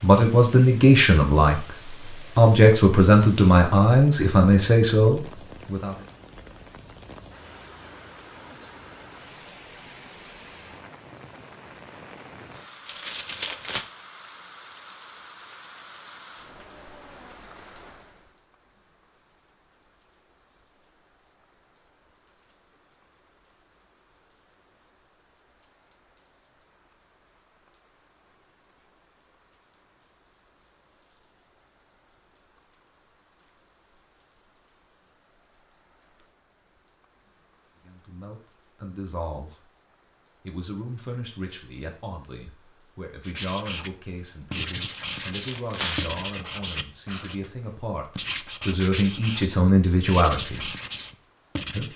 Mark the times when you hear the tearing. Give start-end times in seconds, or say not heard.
12.8-13.8, 44.9-46.3.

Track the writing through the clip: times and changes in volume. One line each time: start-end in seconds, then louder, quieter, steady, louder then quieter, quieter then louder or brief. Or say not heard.
43.2-43.9 brief
44.5-51.9 steady.